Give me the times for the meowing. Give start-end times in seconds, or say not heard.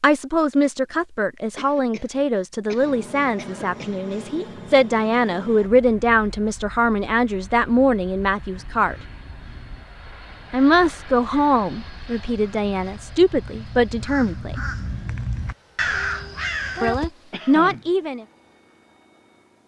15.8-16.9.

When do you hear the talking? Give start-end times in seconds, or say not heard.
0.0-8.9, 10.5-14.6, 16.8-18.2.